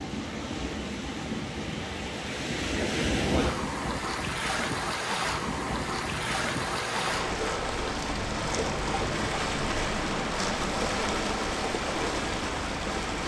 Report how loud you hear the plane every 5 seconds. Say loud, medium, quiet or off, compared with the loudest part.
medium, loud, loud.